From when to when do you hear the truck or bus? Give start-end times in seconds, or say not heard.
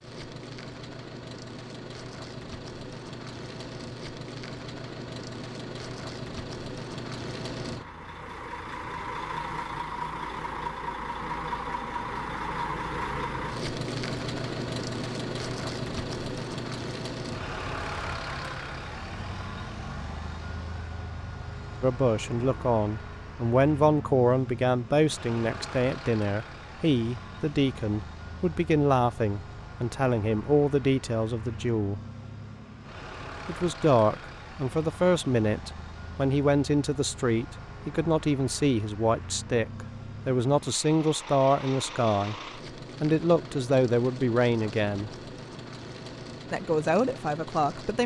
0.0-48.0.